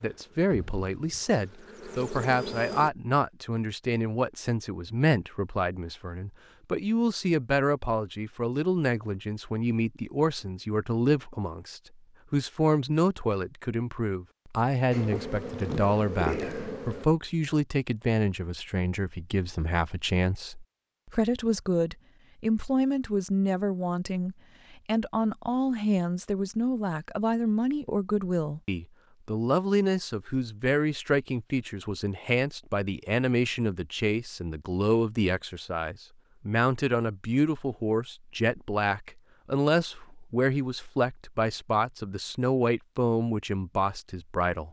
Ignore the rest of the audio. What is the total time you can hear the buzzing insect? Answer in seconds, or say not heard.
5 s.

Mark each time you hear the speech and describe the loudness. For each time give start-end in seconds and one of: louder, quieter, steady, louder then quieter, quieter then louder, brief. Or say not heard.
0.0-44.6 steady.